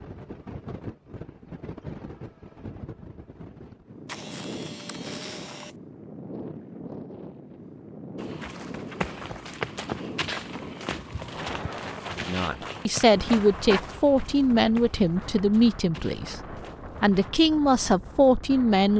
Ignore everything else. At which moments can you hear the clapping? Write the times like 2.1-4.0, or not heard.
not heard.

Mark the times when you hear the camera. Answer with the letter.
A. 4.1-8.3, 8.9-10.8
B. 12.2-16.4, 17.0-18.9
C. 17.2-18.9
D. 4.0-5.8
D.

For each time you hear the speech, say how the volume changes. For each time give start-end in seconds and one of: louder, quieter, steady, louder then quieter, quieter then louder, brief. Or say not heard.
12.2-16.4 steady
17.0-18.9 brief.